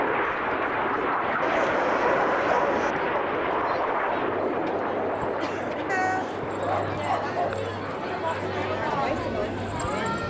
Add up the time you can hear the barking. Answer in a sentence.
You can hear the barking for 3 seconds altogether.